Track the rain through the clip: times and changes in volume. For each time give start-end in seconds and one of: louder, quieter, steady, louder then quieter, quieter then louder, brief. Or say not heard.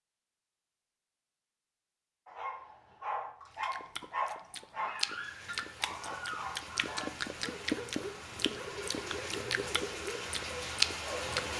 5.0-11.5 louder.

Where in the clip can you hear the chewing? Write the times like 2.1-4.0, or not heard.
3.6-11.5.